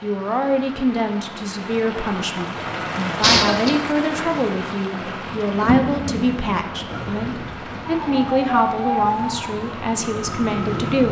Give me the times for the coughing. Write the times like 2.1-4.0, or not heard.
3.2-3.8.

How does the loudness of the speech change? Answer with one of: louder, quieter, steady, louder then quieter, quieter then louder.
steady.